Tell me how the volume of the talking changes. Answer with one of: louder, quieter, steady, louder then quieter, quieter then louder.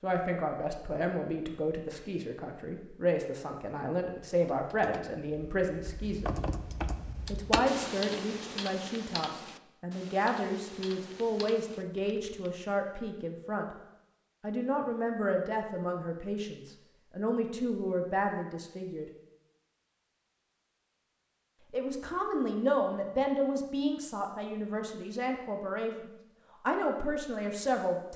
steady.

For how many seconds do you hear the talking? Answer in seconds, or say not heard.
24 s.